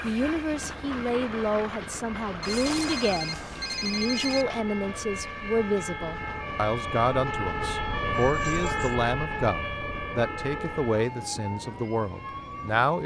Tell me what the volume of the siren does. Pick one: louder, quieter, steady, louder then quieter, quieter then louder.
louder then quieter.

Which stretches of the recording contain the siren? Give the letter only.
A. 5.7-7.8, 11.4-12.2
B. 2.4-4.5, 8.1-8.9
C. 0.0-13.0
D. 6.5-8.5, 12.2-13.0
C.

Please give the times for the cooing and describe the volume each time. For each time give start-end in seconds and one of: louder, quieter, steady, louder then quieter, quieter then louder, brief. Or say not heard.
not heard.